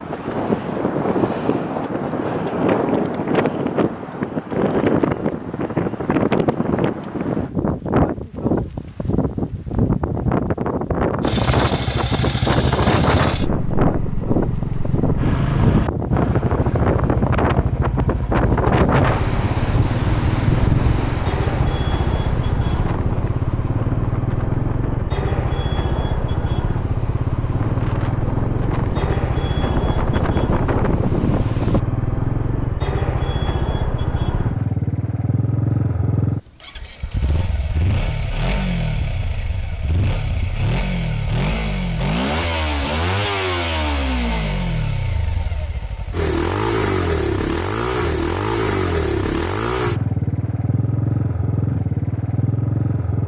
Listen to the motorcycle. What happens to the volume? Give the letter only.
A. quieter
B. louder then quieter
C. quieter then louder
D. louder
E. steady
E.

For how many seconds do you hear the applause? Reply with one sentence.
You can't hear the applause here.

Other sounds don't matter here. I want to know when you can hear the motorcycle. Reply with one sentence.
The motorcycle can be heard from 11.2 to 53.2 s.